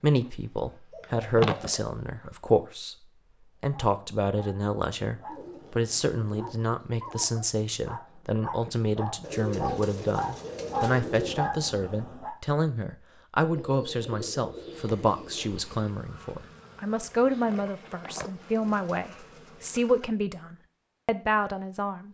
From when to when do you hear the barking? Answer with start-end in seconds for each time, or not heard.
3.6-12.3.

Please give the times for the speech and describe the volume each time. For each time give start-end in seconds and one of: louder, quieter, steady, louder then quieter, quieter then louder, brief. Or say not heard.
0.0-3.0 brief
3.6-22.0 steady.